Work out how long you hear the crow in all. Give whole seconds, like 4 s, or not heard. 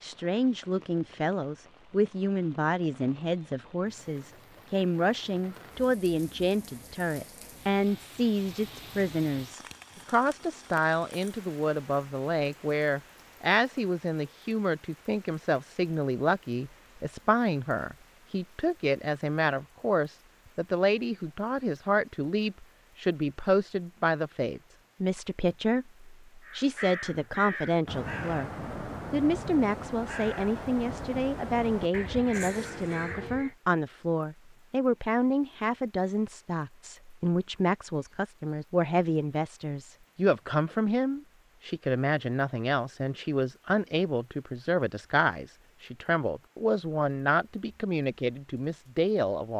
7 s.